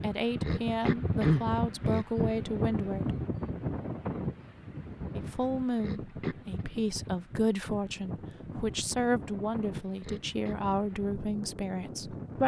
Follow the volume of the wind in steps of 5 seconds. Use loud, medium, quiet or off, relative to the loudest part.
loud, medium, medium.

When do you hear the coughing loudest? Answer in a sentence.
The loudest moment of the coughing is at 1 second.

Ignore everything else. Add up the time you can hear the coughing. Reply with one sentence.
The coughing can be heard for 3 seconds in total.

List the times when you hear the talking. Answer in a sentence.
The talking can be heard from 0.0 to 3.1 s and from 5.2 to 12.4 s.